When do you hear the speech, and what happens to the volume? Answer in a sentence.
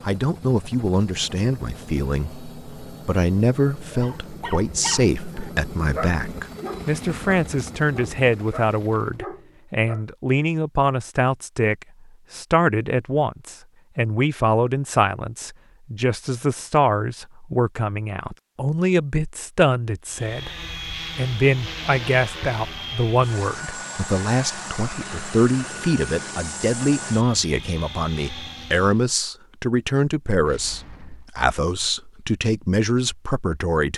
You can hear the speech from 0.0 to 33.9 s, at a steady volume.